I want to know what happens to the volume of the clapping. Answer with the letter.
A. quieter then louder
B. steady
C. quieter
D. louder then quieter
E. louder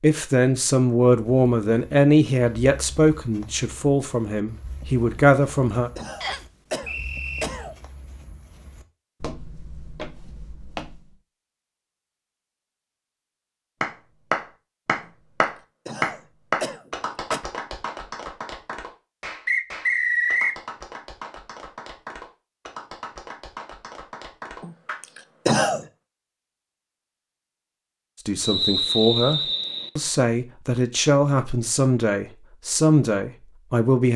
C.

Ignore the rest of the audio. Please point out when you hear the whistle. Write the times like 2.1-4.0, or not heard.
6.2-7.5, 19.4-20.6, 28.4-29.9.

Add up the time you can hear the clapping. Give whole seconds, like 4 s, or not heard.
11 s.